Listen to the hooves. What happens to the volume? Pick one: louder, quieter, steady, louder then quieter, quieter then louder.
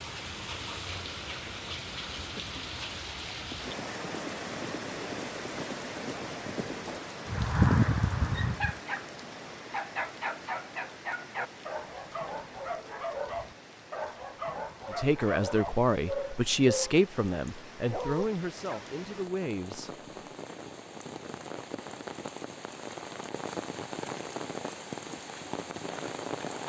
louder.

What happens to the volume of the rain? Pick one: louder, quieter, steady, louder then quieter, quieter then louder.
quieter then louder.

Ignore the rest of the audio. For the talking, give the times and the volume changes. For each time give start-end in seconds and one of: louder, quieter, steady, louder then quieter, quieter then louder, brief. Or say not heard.
14.9-19.9 quieter.